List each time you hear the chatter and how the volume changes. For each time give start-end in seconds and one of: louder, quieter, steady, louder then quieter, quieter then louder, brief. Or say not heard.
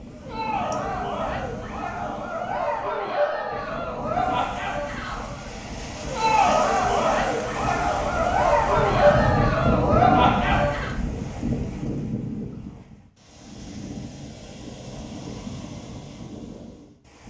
0.1-10.9 louder.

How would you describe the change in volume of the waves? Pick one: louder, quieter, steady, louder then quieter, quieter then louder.
louder then quieter.